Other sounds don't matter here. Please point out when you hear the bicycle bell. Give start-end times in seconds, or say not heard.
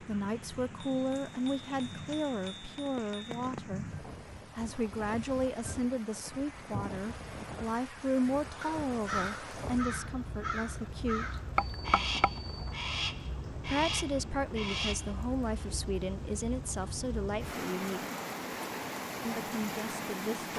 0.9-3.4, 11.6-12.8.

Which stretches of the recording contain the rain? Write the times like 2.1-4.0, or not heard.
0.0-20.5.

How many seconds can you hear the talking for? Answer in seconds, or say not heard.
17 s.